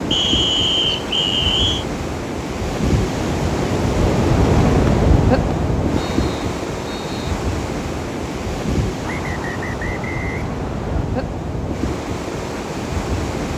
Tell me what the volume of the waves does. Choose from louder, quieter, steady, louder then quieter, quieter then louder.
louder then quieter.